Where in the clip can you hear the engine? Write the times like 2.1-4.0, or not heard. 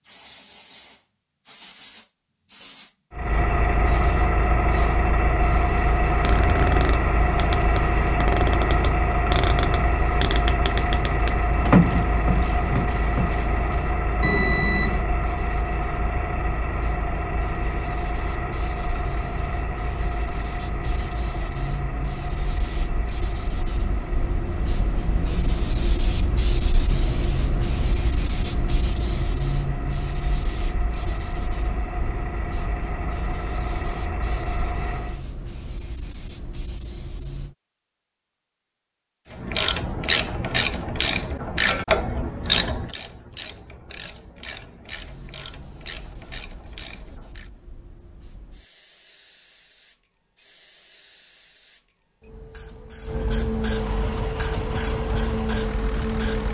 3.1-35.2, 53.6-56.4.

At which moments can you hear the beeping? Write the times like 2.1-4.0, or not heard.
14.2-15.1.